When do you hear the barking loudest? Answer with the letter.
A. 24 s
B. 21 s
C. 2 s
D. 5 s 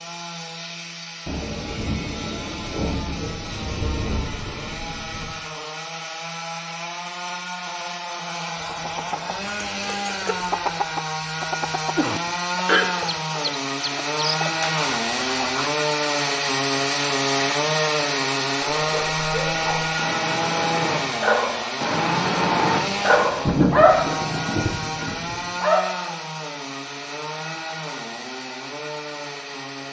A.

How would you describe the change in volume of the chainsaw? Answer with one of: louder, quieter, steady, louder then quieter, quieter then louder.
louder then quieter.